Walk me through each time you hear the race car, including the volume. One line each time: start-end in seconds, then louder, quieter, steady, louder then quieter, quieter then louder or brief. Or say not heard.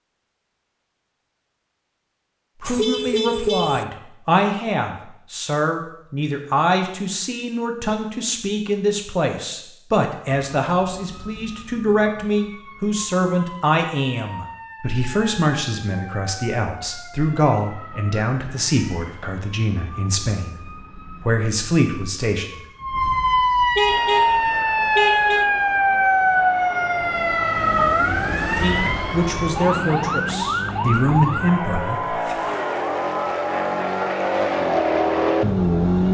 23.9-36.0 louder.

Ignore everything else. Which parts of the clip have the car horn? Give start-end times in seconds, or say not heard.
2.6-3.9, 23.8-25.5.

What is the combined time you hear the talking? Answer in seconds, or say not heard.
24 s.